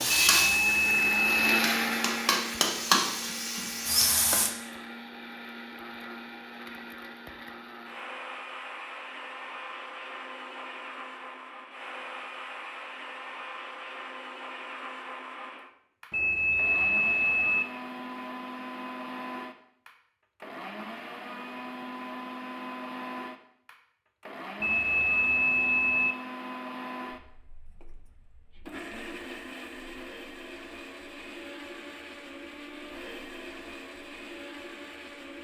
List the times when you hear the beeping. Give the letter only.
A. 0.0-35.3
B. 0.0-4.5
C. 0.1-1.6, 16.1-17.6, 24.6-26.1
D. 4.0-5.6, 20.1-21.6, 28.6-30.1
C.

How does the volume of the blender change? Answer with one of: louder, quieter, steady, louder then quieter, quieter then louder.
quieter.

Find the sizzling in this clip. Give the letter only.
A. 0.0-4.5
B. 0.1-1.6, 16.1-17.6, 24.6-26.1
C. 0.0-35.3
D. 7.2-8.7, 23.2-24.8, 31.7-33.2
A.